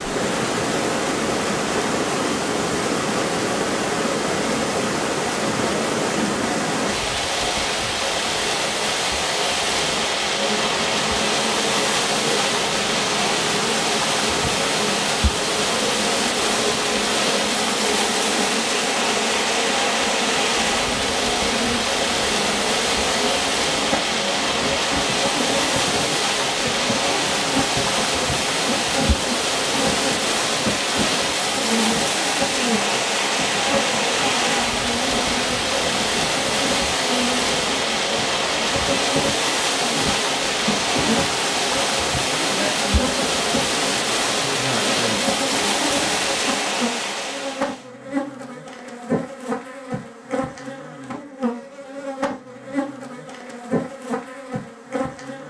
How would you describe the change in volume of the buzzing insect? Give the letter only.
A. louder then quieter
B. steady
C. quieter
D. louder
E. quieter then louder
B.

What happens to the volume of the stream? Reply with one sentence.
The loudness of the stream stays about the same.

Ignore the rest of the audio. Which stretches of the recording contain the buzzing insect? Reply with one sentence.
The buzzing insect can be heard from 10.2 to 55.4 s.